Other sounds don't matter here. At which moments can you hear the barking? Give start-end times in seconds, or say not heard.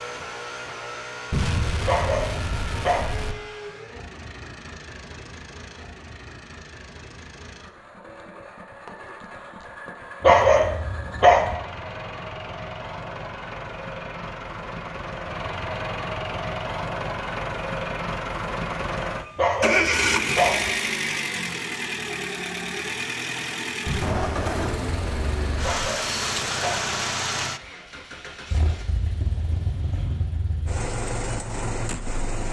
1.9-3.2, 10.2-11.6, 19.4-20.7, 25.6-26.9.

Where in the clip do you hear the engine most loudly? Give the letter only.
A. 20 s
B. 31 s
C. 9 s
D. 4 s
A.